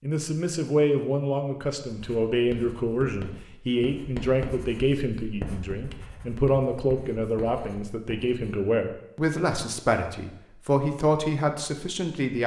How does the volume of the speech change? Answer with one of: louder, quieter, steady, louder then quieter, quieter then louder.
steady.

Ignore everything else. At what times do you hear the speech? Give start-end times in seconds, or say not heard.
0.0-12.4.